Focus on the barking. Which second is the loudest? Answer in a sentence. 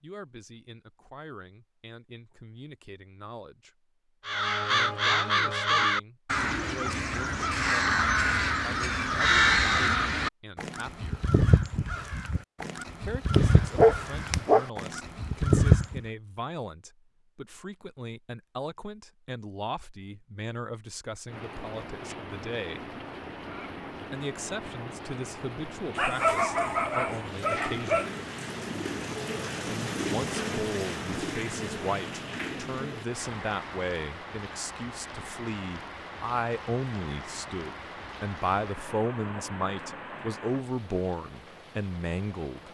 The loudest moment of the barking is at 14 seconds.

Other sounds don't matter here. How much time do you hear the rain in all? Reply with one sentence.
The rain can be heard for 21 seconds in total.